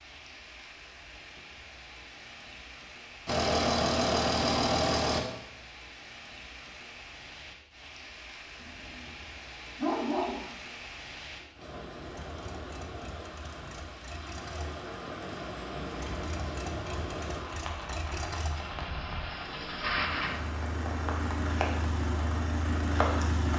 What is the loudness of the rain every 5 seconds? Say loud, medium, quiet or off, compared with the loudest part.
medium, medium, medium, loud, loud.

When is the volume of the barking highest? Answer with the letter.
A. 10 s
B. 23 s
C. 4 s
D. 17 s
A.